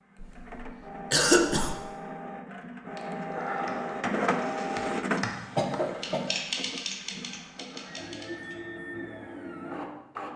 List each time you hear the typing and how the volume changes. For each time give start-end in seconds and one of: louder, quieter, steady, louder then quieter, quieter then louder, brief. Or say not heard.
3.0-8.8 louder then quieter.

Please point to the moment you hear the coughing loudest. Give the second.
1 s.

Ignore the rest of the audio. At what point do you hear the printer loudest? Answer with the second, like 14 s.
5 s.